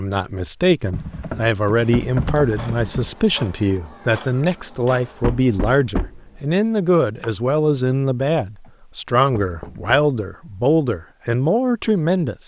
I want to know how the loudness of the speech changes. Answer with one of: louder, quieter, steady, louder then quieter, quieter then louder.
steady.